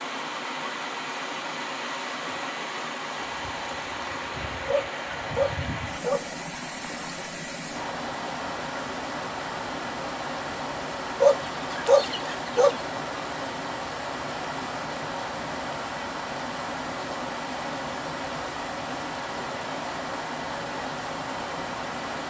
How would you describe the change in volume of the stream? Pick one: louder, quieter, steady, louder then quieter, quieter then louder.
steady.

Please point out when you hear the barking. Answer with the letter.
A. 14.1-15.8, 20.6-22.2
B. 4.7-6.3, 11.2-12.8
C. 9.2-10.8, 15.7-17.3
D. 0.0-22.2
B.